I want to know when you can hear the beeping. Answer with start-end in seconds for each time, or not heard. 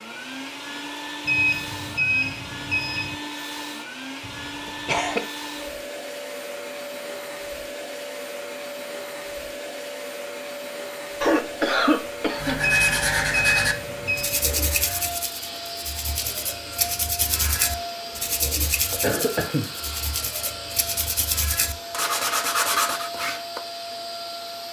1.2-3.1, 12.6-14.4.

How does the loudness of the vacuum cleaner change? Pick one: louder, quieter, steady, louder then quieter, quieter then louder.
steady.